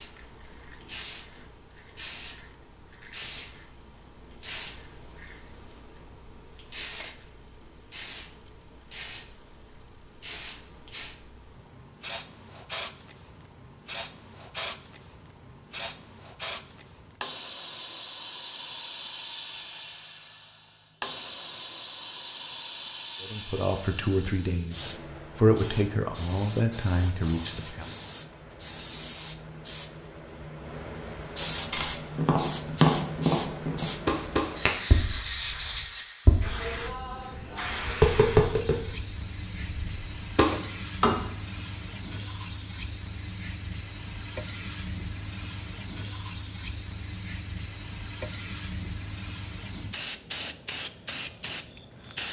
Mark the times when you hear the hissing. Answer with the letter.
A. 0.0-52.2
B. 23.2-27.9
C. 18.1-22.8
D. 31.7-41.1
A.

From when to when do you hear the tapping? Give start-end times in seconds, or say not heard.
31.7-41.1.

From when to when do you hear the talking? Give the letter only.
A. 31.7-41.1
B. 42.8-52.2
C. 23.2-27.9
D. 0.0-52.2
C.